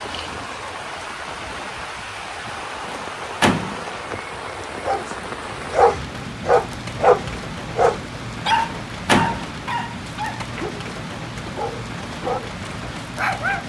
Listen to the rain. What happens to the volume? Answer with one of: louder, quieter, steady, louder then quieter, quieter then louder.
steady.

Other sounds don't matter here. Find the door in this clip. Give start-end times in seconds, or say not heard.
2.9-3.9, 8.5-9.6.